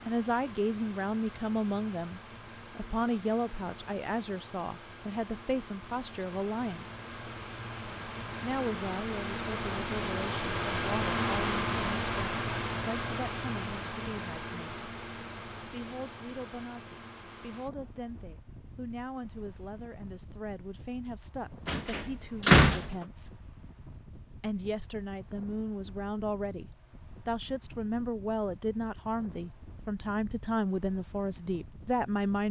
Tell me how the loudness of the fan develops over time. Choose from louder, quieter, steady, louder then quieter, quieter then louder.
louder then quieter.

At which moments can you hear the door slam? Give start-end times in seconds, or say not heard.
21.6-22.9.